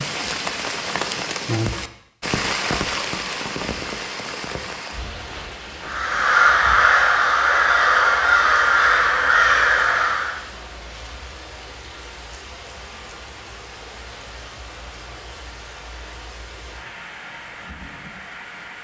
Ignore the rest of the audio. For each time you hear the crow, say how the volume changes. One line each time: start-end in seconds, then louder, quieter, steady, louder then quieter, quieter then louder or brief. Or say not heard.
5.8-10.4 steady.